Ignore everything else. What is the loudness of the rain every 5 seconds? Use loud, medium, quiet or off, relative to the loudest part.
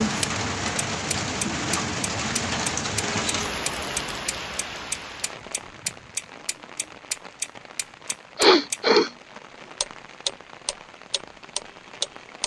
loud, quiet, quiet.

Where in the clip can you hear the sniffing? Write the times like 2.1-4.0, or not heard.
8.3-9.1.